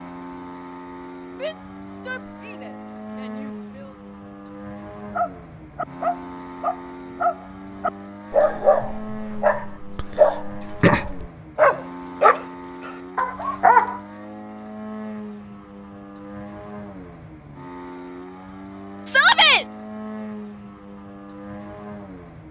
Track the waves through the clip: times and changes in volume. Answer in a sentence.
The waves can't be heard in this clip.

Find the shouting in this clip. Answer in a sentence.
The shouting can be heard from 1.4 to 4.0 s and from 19.1 to 19.6 s.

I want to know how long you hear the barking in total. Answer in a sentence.
You can hear the barking for 9 seconds altogether.